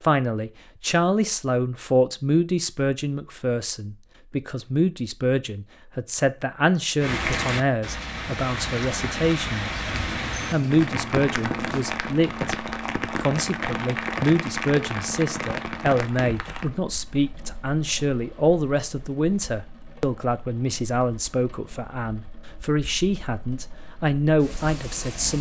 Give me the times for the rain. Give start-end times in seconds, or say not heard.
7.0-25.3.